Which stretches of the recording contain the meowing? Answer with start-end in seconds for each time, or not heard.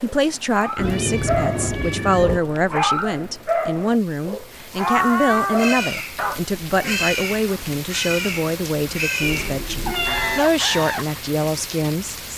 0.8-2.4, 4.8-5.8, 9.2-10.4.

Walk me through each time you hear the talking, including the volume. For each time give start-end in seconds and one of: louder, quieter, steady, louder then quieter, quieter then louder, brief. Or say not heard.
0.0-12.3 steady.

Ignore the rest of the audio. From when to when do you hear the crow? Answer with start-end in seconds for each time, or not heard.
5.5-11.2.